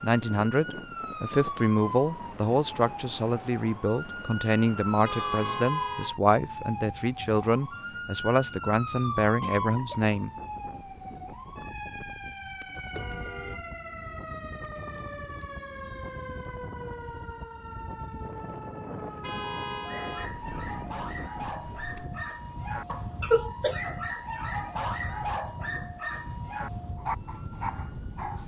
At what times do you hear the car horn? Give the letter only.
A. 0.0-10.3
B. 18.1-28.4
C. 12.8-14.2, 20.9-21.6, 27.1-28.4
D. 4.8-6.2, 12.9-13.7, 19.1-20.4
D.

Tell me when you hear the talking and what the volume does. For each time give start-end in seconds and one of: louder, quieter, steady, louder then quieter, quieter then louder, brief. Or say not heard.
0.0-10.3 steady.